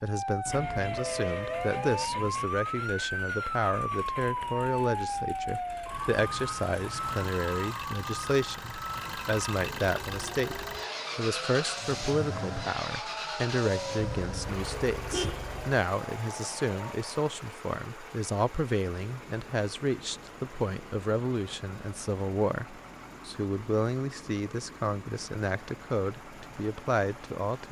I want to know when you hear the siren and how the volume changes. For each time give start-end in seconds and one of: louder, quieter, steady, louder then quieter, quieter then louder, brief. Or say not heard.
0.0-17.1 quieter.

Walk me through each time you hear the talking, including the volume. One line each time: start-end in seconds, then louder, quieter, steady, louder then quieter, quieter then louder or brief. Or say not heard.
0.0-27.6 steady.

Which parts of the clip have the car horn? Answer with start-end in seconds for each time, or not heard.
0.5-2.5, 13.9-15.8.